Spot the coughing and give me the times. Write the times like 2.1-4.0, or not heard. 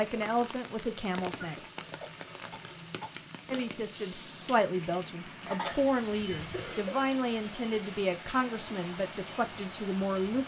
1.4-3.2, 5.4-7.0.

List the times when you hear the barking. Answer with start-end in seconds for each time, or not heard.
not heard.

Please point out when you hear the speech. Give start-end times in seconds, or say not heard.
0.0-1.6, 3.5-10.4.